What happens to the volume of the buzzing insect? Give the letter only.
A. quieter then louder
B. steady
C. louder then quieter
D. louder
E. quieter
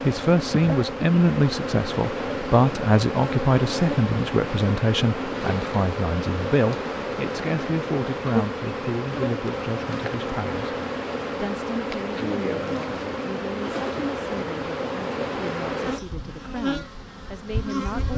B.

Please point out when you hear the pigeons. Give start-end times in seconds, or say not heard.
not heard.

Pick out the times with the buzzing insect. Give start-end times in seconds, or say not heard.
0.0-18.1.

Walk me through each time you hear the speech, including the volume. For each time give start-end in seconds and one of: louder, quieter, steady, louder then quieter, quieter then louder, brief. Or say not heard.
0.1-18.1 quieter.